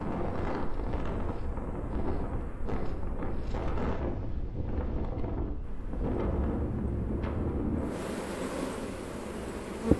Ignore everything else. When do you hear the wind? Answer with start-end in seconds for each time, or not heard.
0.0-9.9.